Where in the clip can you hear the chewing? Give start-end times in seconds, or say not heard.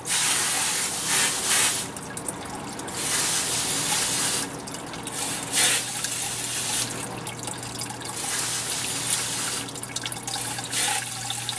not heard.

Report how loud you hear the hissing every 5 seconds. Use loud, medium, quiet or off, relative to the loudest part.
loud, loud, medium.